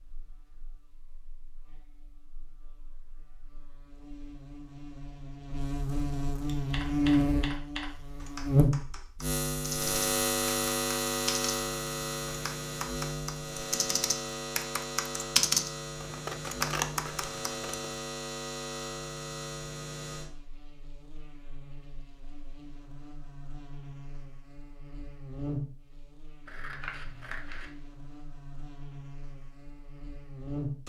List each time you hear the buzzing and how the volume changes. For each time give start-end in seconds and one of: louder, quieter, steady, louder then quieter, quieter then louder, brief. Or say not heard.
0.0-30.8 louder then quieter.